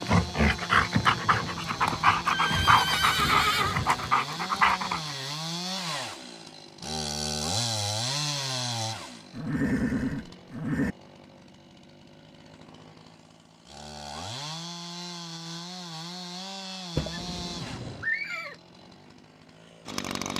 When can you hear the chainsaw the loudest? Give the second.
8 s.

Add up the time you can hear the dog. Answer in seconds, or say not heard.
5 s.